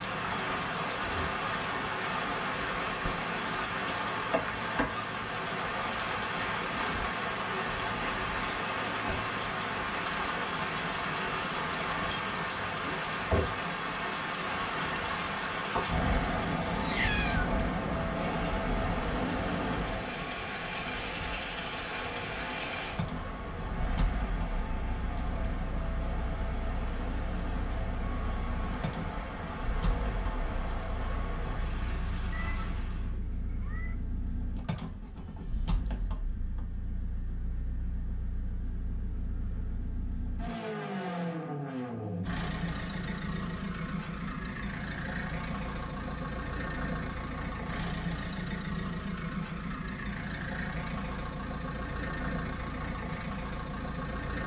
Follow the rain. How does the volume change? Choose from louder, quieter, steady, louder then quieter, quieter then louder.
quieter.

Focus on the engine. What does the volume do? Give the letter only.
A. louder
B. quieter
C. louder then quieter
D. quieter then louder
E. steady
A.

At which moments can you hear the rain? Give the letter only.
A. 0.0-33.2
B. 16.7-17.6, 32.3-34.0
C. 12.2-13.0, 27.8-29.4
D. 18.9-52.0
A.